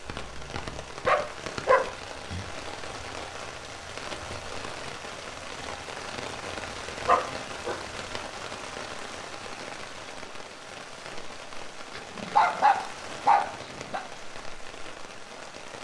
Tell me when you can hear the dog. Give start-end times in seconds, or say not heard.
0.2-2.5, 7.0-7.8, 11.9-14.0.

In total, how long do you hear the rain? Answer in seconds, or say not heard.
16 s.